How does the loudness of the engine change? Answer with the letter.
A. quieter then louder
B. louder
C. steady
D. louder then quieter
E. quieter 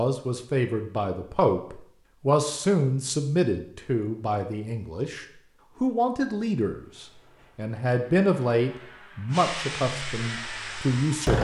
B.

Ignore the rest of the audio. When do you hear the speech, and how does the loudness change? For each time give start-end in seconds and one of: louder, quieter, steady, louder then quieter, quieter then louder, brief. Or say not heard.
0.0-11.3 steady.